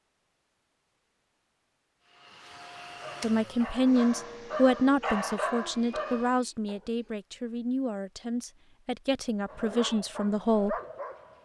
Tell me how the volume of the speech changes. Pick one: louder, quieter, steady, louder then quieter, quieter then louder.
quieter.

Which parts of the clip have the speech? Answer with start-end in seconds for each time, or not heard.
3.2-10.8.